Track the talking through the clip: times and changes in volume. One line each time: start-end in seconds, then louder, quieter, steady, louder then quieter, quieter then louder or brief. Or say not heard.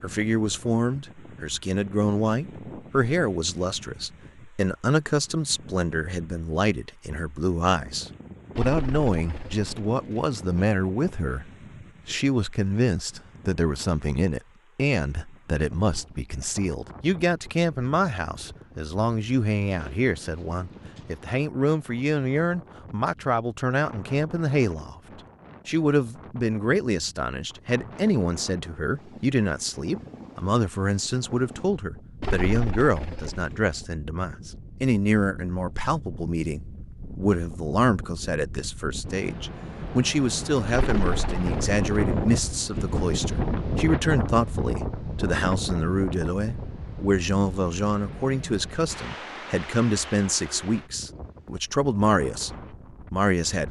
0.0-25.0 steady
25.6-53.6 steady.